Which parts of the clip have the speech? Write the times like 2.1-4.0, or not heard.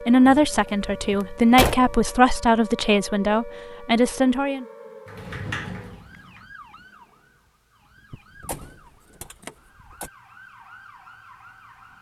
0.1-4.7.